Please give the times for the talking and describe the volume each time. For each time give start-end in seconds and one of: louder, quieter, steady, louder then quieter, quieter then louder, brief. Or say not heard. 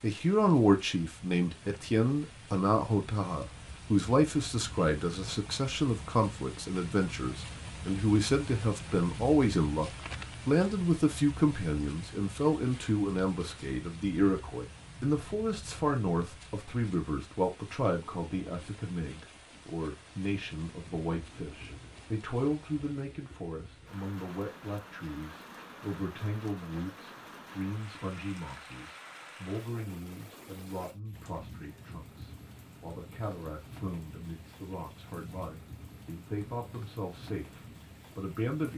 0.0-38.7 quieter.